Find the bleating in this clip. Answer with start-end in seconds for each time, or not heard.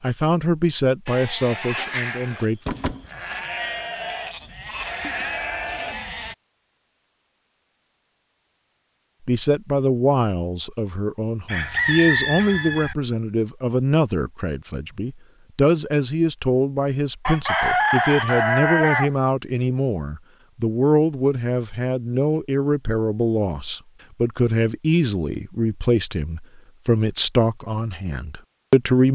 1.1-6.3.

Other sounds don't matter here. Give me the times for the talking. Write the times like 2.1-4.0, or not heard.
0.0-2.6, 9.2-29.0.